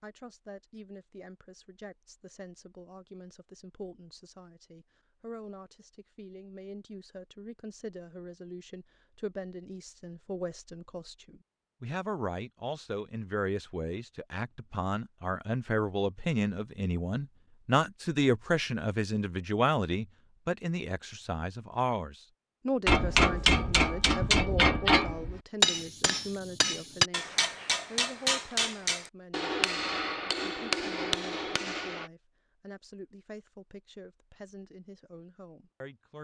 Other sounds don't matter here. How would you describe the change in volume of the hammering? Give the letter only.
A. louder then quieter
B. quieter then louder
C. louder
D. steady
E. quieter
E.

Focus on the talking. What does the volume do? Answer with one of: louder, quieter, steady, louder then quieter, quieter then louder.
louder then quieter.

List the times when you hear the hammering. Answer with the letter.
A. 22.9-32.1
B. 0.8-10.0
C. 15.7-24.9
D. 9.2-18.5
A.